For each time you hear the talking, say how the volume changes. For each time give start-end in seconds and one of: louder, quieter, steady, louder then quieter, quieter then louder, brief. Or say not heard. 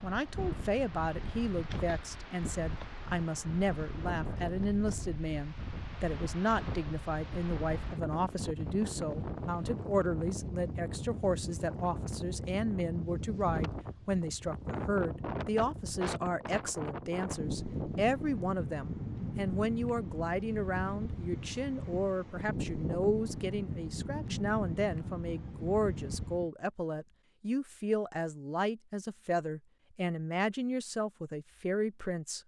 0.0-32.4 steady.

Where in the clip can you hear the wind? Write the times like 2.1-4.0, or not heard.
0.0-26.5.